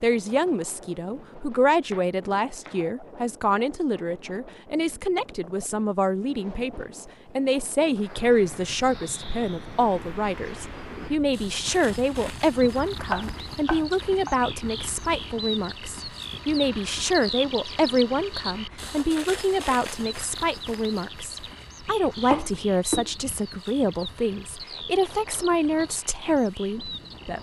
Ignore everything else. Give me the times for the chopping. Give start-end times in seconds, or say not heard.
1.9-2.9, 13.1-14.4, 21.6-23.1.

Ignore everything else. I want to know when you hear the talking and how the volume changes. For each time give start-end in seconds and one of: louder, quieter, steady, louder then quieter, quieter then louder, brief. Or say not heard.
0.0-27.3 steady.